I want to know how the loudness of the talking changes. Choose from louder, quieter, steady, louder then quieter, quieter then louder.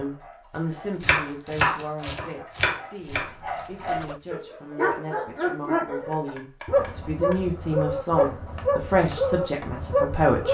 quieter then louder.